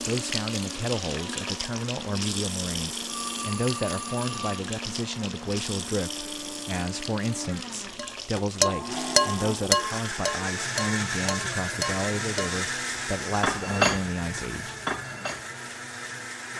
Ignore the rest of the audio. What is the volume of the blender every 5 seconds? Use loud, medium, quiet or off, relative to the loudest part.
medium, medium, loud, medium.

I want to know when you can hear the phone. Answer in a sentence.
The phone can be heard from 3.1 to 4.6 s.